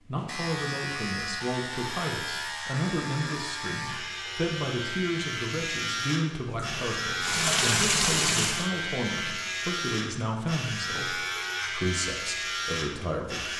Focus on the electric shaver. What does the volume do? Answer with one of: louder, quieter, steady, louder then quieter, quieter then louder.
steady.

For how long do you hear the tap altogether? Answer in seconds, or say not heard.
2 s.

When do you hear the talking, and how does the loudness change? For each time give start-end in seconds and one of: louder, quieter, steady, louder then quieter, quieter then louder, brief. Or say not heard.
0.0-13.5 steady.